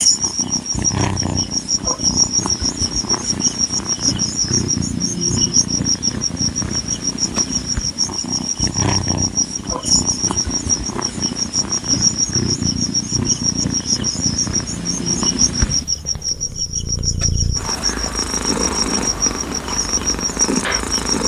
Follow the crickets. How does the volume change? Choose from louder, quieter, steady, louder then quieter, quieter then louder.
steady.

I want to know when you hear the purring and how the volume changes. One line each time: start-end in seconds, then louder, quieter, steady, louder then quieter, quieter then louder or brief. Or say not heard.
0.0-21.2 steady.